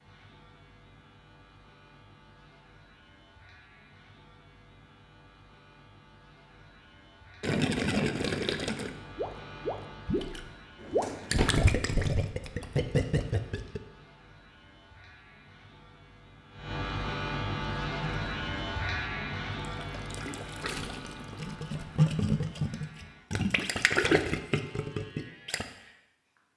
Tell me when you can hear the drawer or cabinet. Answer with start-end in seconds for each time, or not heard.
10.8-11.6.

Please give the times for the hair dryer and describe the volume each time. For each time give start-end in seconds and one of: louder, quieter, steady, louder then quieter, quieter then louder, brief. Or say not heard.
not heard.